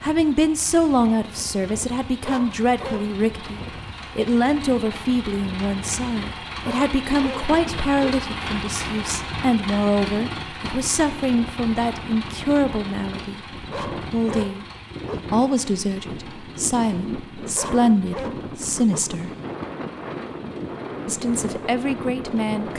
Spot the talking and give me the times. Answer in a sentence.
You can hear the talking from 0.0 to 13.4 s, from 14.1 to 14.7 s, from 15.3 to 19.3 s and from 21.1 to 22.7 s.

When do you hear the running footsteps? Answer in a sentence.
You can't hear the running footsteps here.